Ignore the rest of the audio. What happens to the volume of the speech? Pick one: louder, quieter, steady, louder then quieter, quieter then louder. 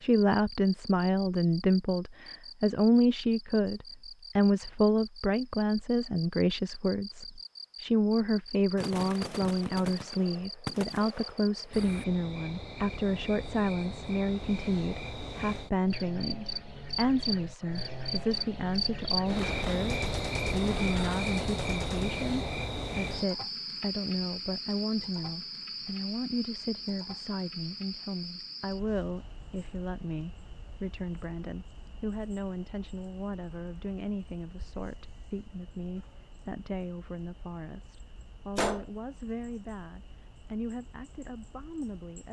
quieter.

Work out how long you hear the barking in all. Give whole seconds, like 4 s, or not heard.
not heard.